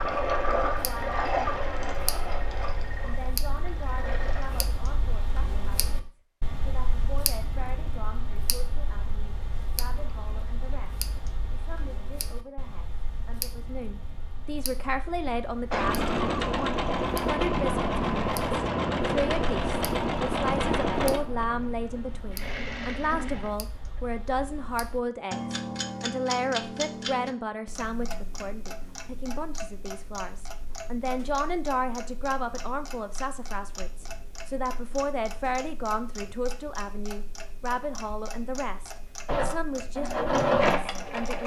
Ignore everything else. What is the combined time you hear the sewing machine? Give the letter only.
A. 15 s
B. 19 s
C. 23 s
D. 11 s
A.